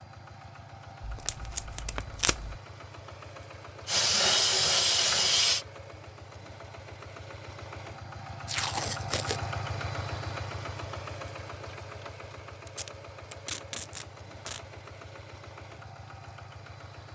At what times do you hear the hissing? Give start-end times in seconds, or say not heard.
3.9-5.7.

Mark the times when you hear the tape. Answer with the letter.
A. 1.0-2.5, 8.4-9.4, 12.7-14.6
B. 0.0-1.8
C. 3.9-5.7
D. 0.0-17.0
A.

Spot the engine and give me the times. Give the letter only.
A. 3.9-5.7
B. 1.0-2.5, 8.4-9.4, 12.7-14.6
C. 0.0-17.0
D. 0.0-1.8
C.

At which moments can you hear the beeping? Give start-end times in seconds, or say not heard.
not heard.